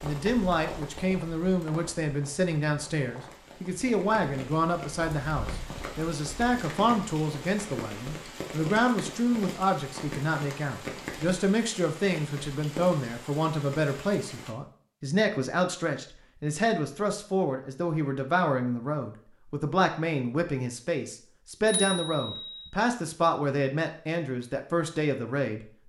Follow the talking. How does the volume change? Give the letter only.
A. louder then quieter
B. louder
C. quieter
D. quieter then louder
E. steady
E.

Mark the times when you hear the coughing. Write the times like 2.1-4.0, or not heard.
not heard.